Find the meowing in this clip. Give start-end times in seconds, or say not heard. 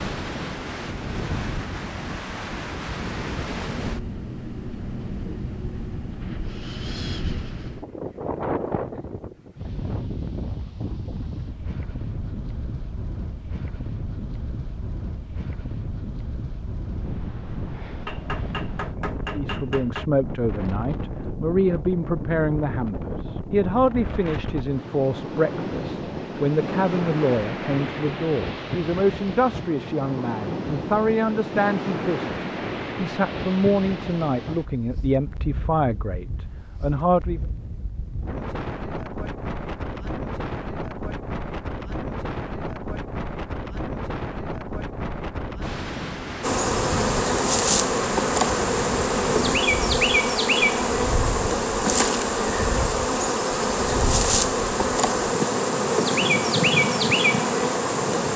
not heard.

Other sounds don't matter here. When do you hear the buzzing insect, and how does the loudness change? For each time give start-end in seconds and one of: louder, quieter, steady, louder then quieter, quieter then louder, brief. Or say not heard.
46.4-58.3 steady.